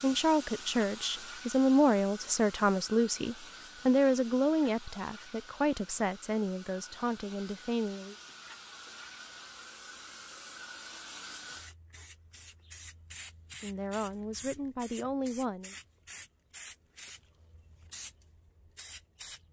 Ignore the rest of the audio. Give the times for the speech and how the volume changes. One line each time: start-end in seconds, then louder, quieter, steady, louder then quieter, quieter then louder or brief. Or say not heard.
0.0-8.2 quieter
13.6-15.8 brief.